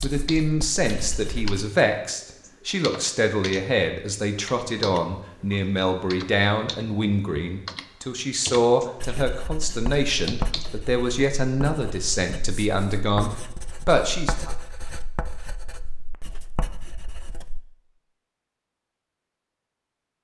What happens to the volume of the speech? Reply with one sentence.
The loudness of the speech stays about the same.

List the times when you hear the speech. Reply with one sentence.
You can hear the speech from 0.0 to 14.6 s.